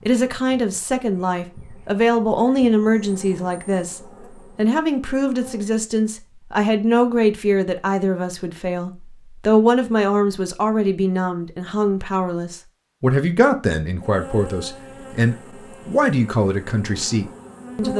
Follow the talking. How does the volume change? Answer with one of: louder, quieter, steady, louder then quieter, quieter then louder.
steady.